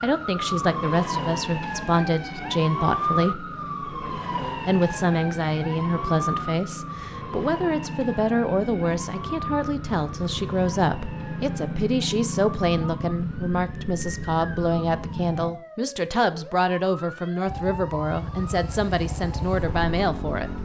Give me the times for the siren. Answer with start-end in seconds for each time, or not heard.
0.0-20.6.